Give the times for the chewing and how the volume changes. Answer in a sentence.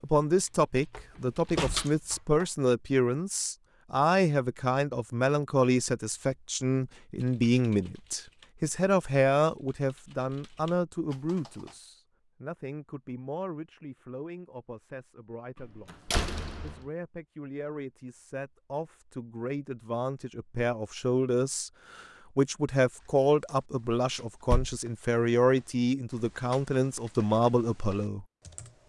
You can't hear the chewing here.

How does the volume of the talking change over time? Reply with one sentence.
The volume of the talking goes down, then up.